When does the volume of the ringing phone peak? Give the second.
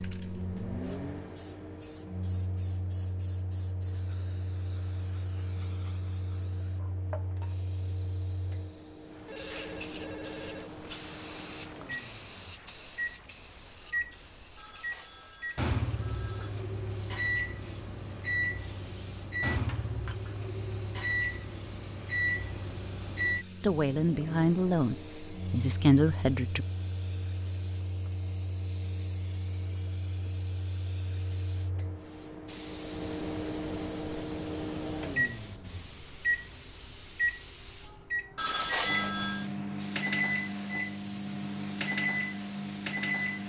39 s.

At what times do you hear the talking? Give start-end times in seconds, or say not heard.
23.6-26.6.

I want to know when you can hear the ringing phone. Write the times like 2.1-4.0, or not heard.
9.2-10.7, 14.6-16.6, 38.4-39.5.